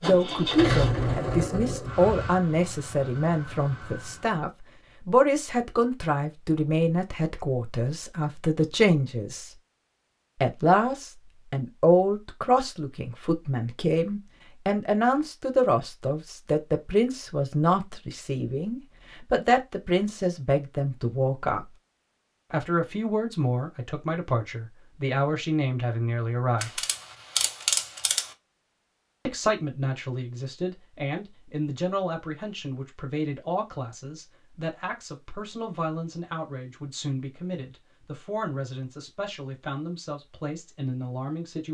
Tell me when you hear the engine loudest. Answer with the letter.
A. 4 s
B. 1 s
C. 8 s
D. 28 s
B.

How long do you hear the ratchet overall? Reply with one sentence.
You can hear the ratchet for 2 seconds altogether.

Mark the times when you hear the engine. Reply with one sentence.
The engine can be heard from 0.0 to 4.5 s.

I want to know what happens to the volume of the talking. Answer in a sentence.
The volume of the talking goes down.